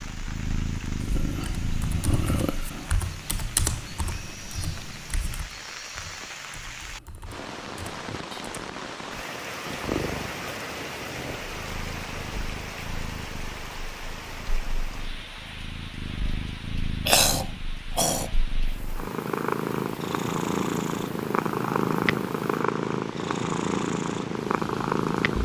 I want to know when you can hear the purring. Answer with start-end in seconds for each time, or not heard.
0.0-2.8, 9.7-25.4.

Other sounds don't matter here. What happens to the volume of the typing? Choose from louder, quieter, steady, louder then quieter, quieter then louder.
quieter.